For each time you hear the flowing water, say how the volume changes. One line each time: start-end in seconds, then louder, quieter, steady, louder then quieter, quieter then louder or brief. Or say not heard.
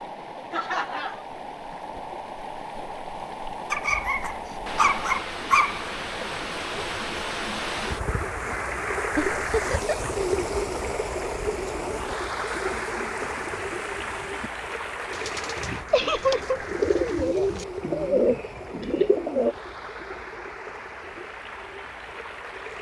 0.0-22.7 louder then quieter.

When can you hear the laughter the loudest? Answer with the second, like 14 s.
16 s.